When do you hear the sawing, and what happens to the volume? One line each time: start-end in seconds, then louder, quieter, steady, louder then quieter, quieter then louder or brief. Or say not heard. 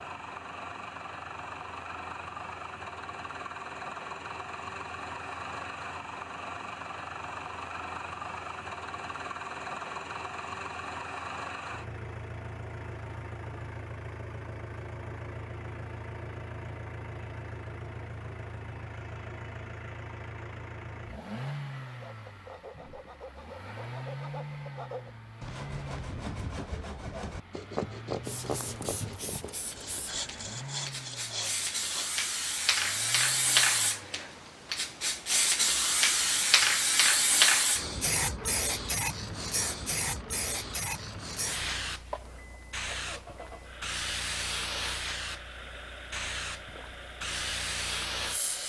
21.7-32.2 louder.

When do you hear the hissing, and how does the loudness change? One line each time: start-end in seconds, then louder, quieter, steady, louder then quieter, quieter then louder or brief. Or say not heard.
28.2-48.6 louder then quieter.